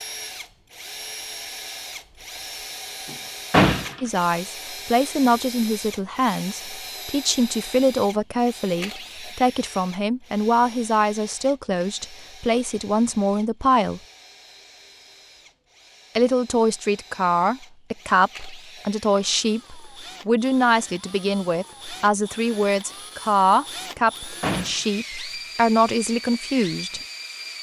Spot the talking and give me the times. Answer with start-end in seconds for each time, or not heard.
4.0-14.0, 16.1-27.0.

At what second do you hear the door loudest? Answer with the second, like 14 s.
4 s.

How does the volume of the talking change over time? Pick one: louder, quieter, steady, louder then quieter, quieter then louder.
steady.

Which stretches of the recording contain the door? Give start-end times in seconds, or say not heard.
3.5-4.0, 24.4-24.9.